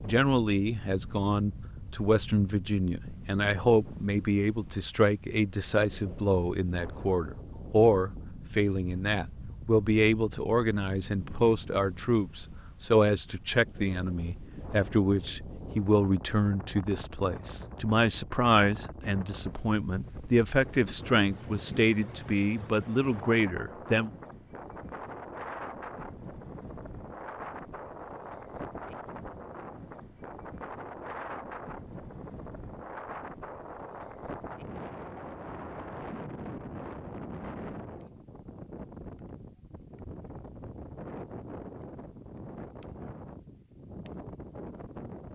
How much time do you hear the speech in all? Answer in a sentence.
The speech can be heard for 24 seconds in total.